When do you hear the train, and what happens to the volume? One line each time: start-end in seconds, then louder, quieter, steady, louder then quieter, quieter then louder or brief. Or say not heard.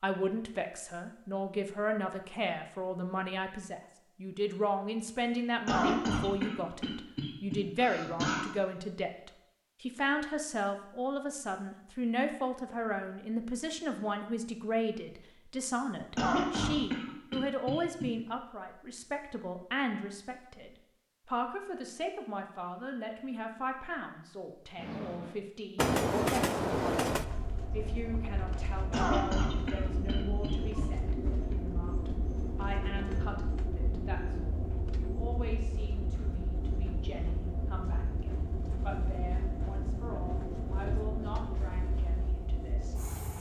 24.8-43.3 quieter.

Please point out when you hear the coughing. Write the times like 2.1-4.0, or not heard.
5.7-8.4, 16.1-18.1, 28.9-30.9.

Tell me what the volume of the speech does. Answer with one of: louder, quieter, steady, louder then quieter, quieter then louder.
quieter.